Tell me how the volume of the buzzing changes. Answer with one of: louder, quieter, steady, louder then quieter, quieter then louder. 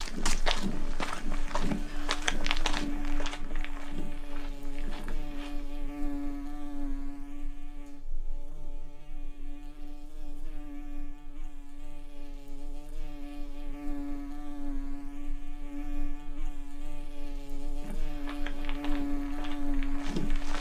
quieter then louder.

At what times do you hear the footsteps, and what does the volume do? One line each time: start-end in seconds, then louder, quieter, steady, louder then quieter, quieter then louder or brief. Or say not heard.
0.0-5.7 quieter
17.8-20.5 brief.